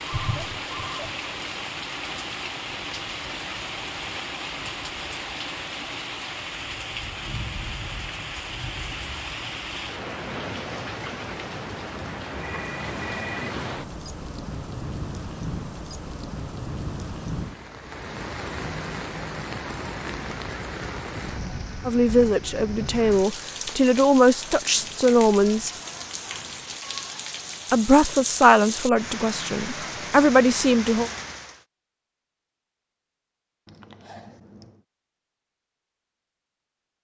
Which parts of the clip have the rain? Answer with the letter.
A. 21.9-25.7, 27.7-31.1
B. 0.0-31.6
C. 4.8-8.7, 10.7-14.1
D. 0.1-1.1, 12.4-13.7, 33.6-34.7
B.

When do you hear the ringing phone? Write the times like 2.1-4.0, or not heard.
0.1-1.1, 12.4-13.7, 33.6-34.7.